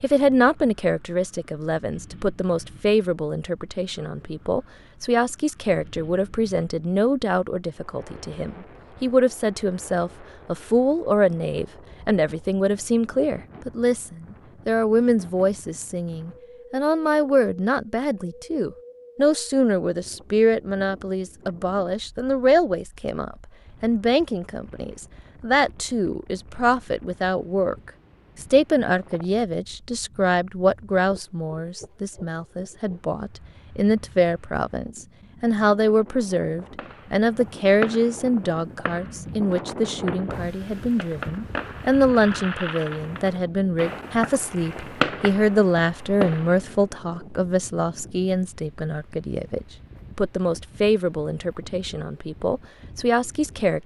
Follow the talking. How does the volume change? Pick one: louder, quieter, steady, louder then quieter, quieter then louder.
steady.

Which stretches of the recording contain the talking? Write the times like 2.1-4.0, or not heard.
0.0-53.8.